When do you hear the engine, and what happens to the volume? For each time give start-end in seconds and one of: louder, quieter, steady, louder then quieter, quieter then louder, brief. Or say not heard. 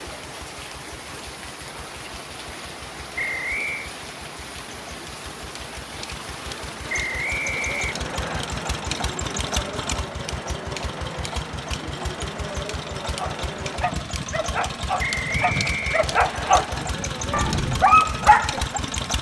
0.2-19.1 louder.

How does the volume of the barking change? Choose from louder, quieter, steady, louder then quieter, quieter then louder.
louder.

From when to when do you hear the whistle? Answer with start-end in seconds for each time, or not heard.
3.1-3.9, 6.8-8.4, 14.9-16.5.